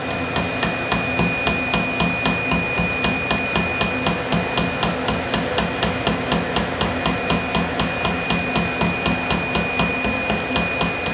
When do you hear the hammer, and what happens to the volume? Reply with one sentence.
The hammer can be heard from 0.1 to 11.0 s, at a steady volume.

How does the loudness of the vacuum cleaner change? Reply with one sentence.
The volume of the vacuum cleaner stays about the same.